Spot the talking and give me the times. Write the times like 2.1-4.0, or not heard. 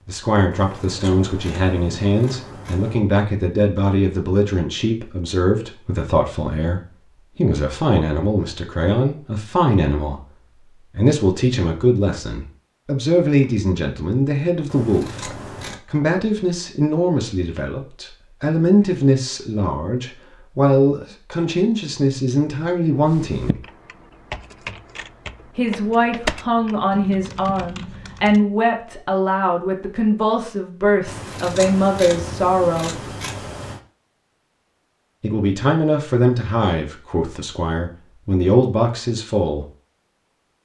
0.1-23.6, 25.6-33.0, 35.2-39.6.